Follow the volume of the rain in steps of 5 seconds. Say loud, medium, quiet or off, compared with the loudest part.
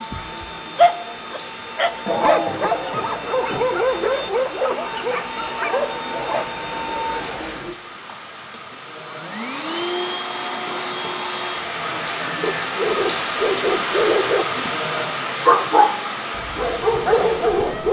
medium, medium, loud, loud.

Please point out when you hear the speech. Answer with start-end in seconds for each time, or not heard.
not heard.